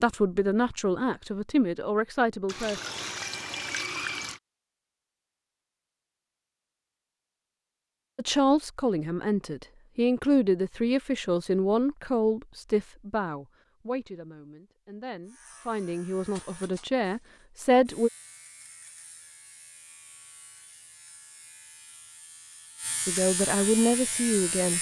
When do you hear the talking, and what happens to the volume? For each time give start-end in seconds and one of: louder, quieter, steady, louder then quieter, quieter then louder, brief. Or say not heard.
0.0-2.8 brief
8.2-18.1 quieter then louder
23.1-24.7 brief.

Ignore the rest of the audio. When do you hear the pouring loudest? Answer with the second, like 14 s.
4 s.